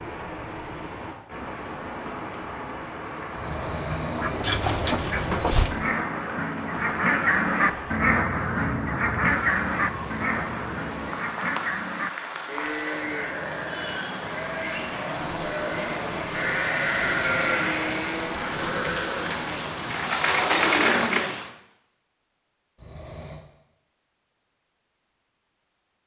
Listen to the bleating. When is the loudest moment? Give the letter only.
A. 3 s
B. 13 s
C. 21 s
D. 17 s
D.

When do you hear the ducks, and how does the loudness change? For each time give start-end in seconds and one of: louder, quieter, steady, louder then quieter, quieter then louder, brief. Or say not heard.
3.9-12.1 louder then quieter.